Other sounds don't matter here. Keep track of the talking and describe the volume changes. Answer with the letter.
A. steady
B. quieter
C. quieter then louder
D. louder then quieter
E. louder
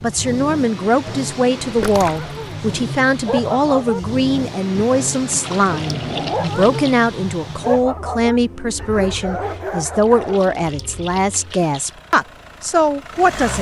A.